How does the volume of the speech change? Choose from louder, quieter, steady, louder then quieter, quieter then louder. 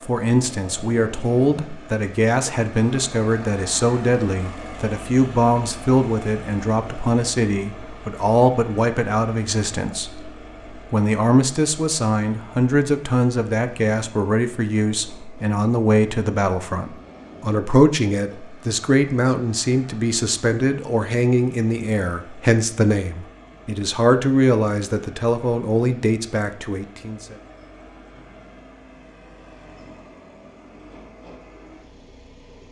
steady.